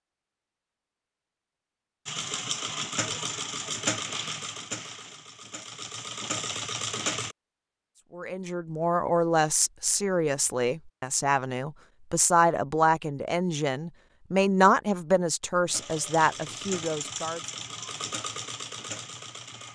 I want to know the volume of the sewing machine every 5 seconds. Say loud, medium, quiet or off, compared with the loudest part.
loud, loud, off, medium.